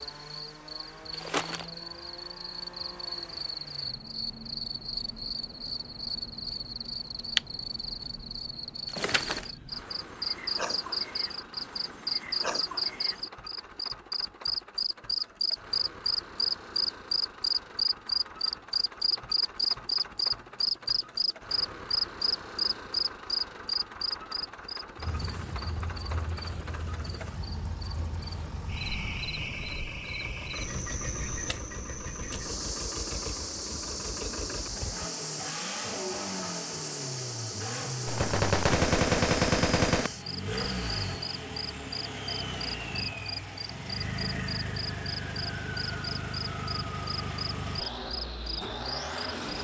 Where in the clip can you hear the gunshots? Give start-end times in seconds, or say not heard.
38.0-40.1.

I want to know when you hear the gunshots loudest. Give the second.
39 s.